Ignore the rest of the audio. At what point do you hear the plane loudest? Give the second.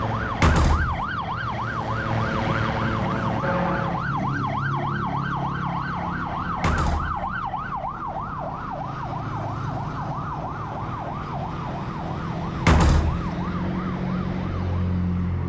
3 s.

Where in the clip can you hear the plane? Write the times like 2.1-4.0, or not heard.
0.0-4.0.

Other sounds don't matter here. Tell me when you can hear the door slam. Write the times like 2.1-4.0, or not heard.
0.3-1.1, 6.5-7.2, 12.6-13.3.